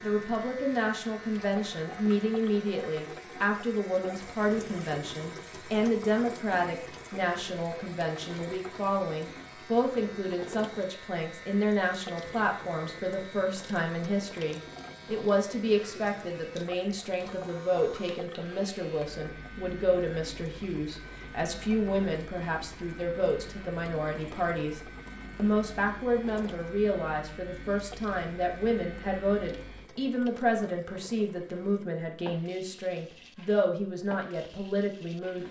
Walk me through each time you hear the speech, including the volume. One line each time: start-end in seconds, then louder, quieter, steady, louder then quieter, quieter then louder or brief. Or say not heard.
0.0-35.4 steady.